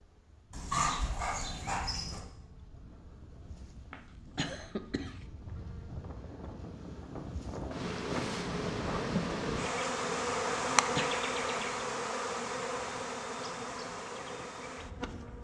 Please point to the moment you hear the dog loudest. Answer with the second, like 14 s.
1 s.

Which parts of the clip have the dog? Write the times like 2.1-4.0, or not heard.
0.5-2.2.